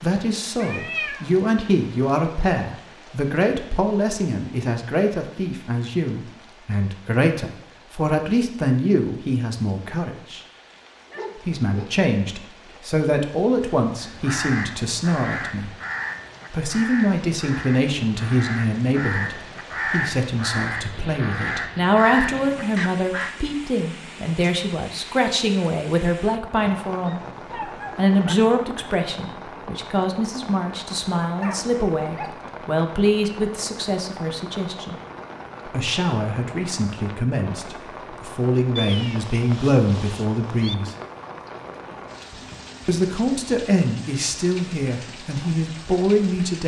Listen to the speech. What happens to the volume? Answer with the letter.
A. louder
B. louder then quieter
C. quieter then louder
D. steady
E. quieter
D.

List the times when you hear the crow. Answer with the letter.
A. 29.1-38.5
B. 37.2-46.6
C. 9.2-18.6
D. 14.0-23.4
D.